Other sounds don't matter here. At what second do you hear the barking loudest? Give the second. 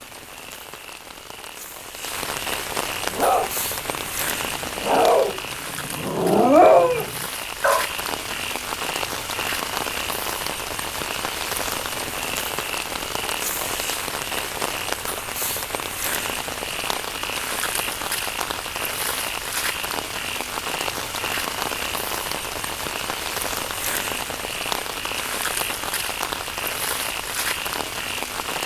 7 s.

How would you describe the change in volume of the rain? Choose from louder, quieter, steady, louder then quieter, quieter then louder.
steady.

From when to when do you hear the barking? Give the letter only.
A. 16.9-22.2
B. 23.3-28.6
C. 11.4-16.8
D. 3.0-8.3
D.